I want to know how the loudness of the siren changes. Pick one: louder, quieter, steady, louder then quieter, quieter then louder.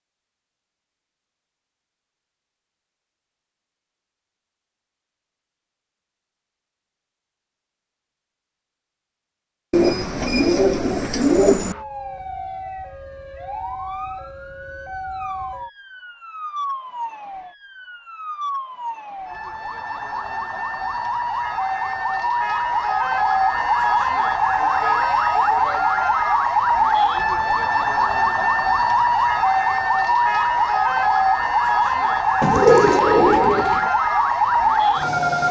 louder.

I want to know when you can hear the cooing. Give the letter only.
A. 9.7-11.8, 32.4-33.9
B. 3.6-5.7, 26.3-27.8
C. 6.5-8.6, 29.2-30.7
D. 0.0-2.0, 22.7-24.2
A.